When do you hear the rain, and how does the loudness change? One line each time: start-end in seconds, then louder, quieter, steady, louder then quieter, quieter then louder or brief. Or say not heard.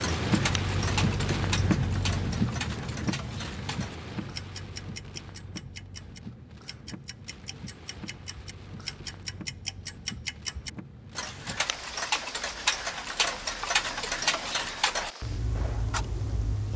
0.0-16.7 quieter.